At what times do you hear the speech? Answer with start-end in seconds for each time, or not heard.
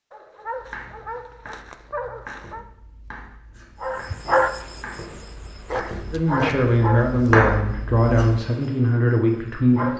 6.1-9.9.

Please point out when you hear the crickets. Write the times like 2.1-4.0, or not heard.
3.8-9.9.